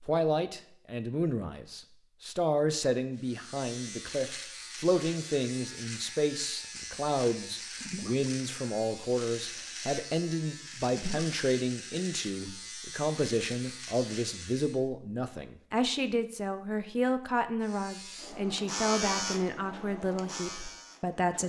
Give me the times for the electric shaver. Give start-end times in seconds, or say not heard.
3.1-14.8, 17.6-21.4.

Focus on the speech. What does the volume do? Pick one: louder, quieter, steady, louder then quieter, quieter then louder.
steady.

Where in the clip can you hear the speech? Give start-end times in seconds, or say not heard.
0.1-21.4.